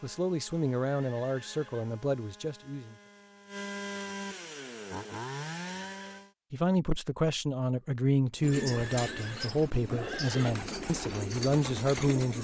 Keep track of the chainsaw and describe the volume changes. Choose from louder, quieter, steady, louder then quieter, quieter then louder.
louder.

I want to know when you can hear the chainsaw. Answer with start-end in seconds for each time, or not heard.
0.0-6.3.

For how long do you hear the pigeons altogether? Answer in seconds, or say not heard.
4 s.